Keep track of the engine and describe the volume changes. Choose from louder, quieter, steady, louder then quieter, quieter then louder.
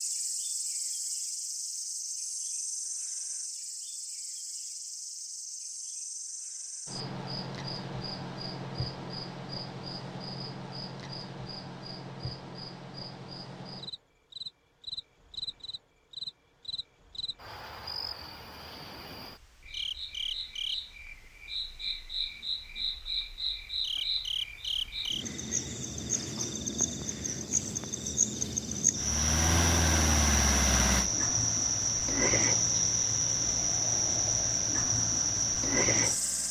quieter.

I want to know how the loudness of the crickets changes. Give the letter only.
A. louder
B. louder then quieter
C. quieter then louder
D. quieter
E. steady
A.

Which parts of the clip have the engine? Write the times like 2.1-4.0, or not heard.
28.9-36.4.